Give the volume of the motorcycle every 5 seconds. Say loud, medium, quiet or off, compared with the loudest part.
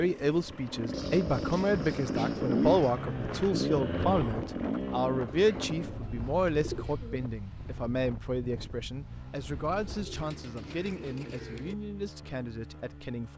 loud, medium, quiet.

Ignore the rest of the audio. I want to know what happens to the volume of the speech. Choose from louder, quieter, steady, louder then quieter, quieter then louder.
quieter.